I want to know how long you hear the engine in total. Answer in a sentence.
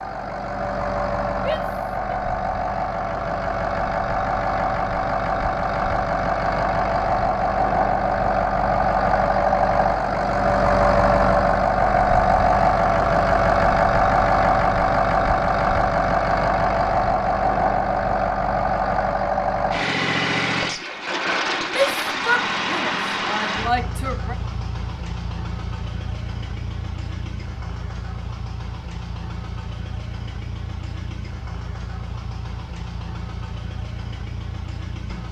The engine can be heard for 35 seconds in total.